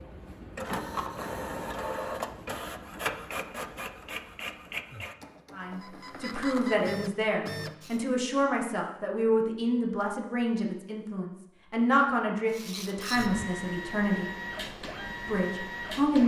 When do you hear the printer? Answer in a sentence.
The printer can be heard from 0.0 to 8.0 s and from 12.5 to 16.2 s.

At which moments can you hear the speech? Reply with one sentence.
You can hear the speech from 5.5 to 14.3 s and from 15.2 to 16.2 s.